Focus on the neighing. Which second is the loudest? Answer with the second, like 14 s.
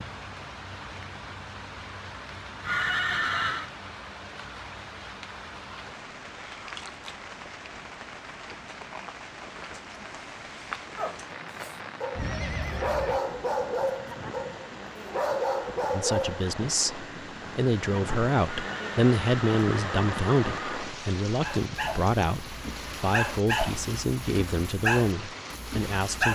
3 s.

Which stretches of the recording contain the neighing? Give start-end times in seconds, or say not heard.
2.6-3.7, 12.2-13.2, 18.4-20.9.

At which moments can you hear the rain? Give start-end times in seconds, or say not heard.
0.0-26.3.